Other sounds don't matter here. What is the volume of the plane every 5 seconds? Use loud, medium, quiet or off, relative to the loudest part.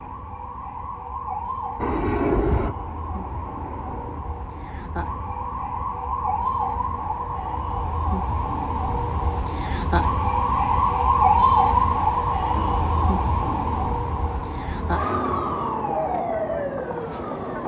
loud, off, medium, off.